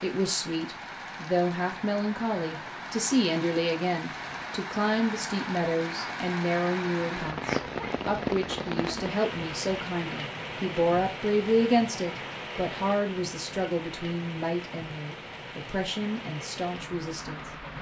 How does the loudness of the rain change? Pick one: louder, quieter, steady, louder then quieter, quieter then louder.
louder then quieter.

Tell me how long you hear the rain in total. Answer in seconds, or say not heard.
18 s.